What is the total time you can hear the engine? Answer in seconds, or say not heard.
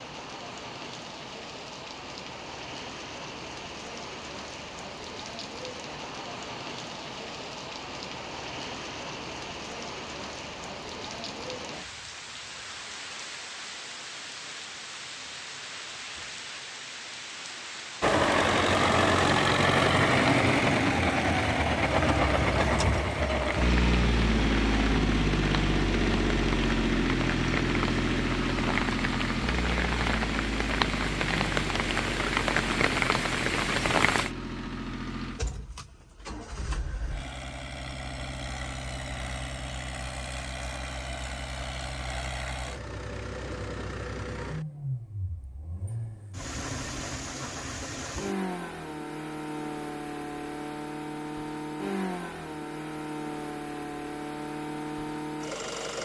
38 s.